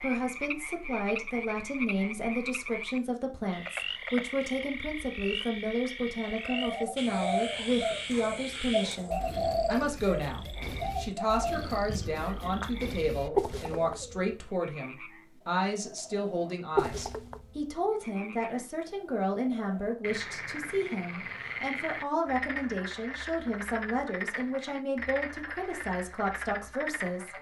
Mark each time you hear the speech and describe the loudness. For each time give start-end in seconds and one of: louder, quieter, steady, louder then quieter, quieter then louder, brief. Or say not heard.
0.0-27.3 steady.